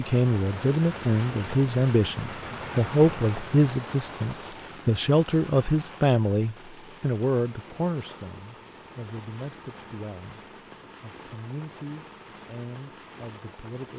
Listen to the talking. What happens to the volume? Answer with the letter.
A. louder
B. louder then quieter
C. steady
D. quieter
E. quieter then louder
D.